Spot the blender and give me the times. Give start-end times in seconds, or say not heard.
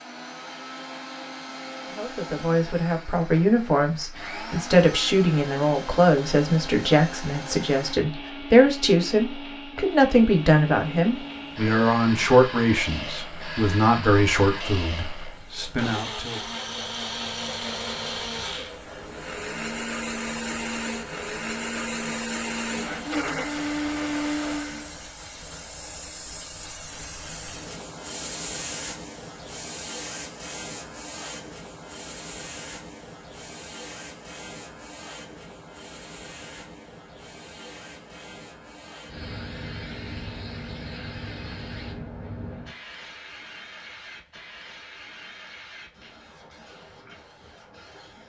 0.0-24.9.